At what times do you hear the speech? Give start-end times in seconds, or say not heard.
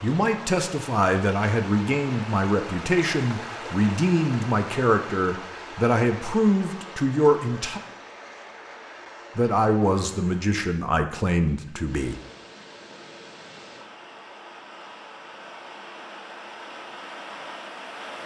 0.0-7.8, 9.3-12.2.